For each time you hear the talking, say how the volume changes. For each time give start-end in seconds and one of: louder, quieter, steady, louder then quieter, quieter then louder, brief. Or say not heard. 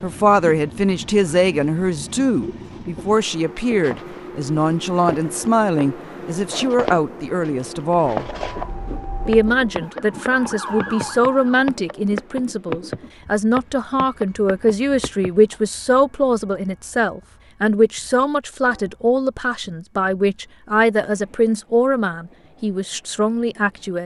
0.0-8.2 steady
9.2-24.0 steady.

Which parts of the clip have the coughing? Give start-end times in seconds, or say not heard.
not heard.